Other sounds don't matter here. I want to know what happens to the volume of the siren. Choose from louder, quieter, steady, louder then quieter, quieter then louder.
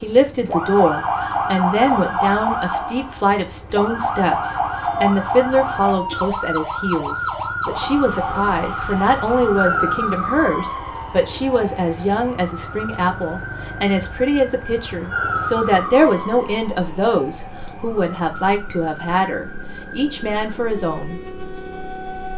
quieter.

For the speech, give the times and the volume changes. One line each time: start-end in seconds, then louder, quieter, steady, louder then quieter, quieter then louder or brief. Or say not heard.
0.0-21.2 steady.